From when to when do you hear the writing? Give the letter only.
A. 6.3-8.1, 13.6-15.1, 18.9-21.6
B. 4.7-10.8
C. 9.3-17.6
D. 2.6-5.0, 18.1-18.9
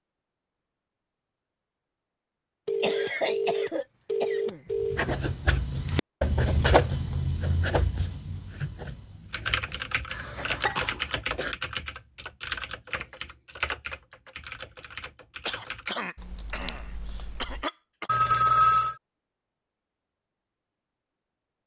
B.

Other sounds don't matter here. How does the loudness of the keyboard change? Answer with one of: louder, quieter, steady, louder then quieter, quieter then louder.
quieter.